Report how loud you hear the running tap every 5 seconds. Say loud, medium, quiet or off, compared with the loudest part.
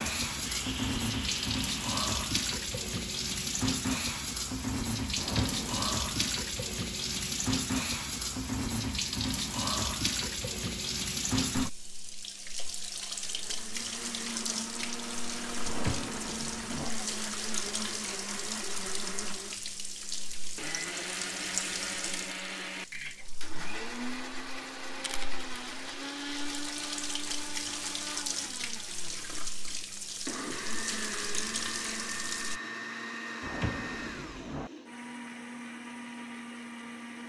loud, loud, loud, medium, medium, medium, medium, off.